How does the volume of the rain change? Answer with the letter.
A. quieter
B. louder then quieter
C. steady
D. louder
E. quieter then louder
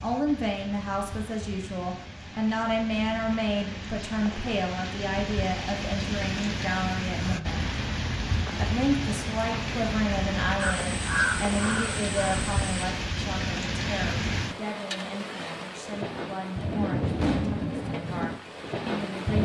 D.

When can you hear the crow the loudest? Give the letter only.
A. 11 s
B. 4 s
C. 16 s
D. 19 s
A.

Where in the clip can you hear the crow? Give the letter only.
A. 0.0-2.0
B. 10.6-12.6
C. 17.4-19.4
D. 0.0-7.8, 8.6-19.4
B.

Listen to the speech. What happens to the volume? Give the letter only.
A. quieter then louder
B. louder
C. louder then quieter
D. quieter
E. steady
D.